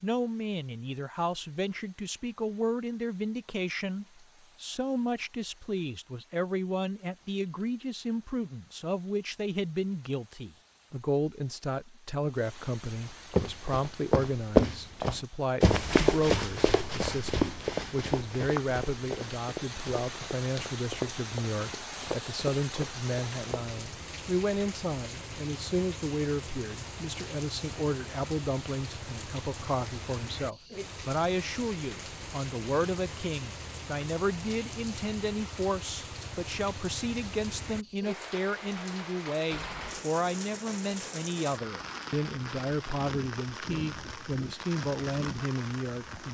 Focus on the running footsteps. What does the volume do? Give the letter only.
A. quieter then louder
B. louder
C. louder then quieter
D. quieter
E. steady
D.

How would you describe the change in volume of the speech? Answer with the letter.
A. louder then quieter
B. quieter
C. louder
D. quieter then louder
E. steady
E.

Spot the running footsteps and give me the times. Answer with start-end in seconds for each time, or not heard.
13.3-23.8.